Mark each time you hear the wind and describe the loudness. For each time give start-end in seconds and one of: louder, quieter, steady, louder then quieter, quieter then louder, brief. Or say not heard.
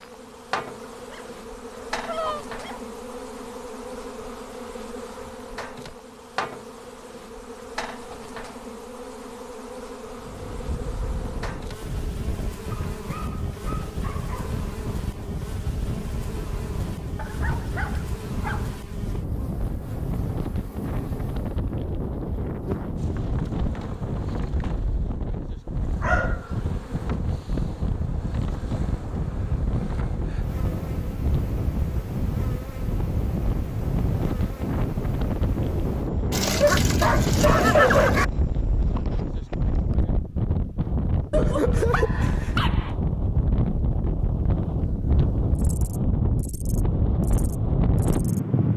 10.2-48.7 louder.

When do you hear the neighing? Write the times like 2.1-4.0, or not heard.
36.8-38.3.